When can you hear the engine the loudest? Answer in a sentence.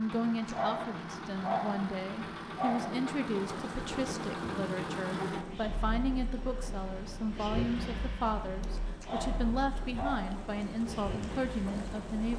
The volume of the engine peaks at 5 seconds.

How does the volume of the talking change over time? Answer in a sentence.
The volume of the talking stays about the same.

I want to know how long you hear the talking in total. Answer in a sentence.
The talking can be heard for 12 seconds in total.